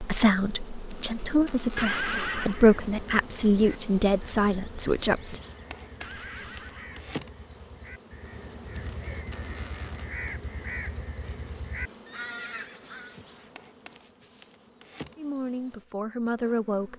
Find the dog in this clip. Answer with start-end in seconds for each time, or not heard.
not heard.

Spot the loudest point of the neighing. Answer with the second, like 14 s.
2 s.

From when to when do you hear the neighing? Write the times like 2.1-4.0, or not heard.
1.8-2.6, 6.0-7.2, 12.1-14.1.